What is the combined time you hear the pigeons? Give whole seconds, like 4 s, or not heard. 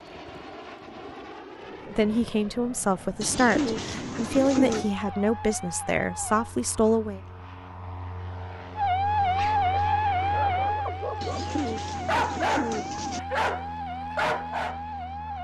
4 s.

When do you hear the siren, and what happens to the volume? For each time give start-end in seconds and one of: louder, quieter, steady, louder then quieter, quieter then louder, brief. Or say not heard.
4.7-6.5 brief
8.8-15.3 quieter.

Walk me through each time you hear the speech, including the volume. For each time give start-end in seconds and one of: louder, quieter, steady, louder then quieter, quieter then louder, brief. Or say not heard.
1.9-7.2 steady.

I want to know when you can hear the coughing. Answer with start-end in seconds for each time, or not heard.
not heard.